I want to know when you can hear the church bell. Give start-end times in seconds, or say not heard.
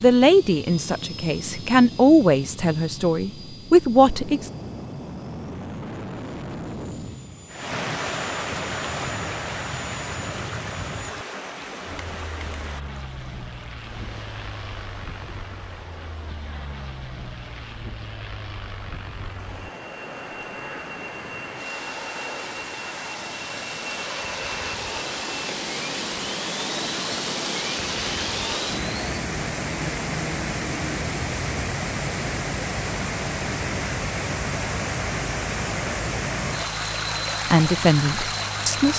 not heard.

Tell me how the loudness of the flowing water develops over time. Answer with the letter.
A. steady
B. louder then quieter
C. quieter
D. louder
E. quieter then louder
E.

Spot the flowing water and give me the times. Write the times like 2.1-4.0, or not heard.
7.5-38.9.